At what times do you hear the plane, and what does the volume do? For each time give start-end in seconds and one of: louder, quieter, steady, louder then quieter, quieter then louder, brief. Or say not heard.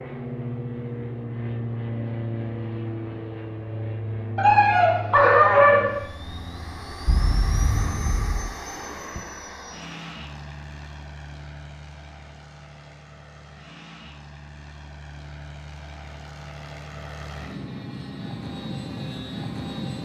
0.0-20.0 quieter then louder.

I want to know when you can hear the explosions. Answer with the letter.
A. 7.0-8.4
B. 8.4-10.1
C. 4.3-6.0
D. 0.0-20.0
A.